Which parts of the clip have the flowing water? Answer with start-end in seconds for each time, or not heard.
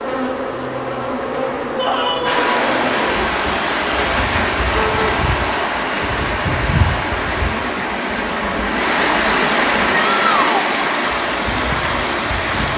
2.2-12.7.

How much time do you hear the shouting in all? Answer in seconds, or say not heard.
2 s.